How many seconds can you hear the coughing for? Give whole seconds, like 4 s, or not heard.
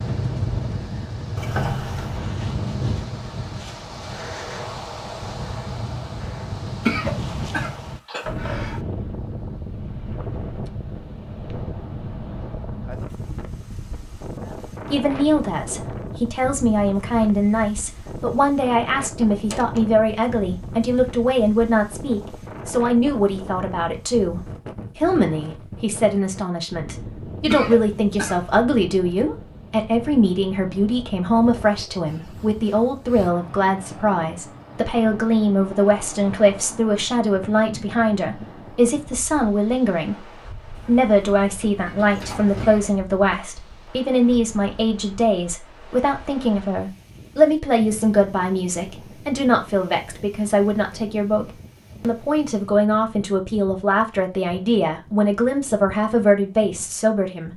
4 s.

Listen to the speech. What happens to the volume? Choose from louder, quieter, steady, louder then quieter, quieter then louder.
steady.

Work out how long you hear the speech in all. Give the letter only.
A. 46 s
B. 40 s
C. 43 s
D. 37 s
C.